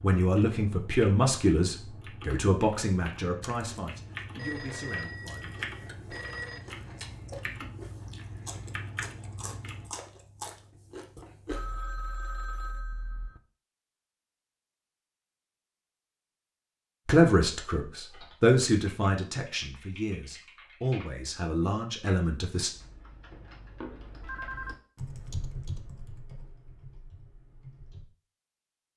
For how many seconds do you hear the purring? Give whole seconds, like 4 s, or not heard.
not heard.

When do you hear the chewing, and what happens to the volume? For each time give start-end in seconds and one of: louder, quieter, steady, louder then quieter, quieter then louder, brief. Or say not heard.
3.4-11.8 louder.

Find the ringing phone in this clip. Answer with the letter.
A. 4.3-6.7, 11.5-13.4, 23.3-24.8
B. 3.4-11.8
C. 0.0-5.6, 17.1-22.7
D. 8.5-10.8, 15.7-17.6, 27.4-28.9
A.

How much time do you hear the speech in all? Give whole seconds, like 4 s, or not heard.
11 s.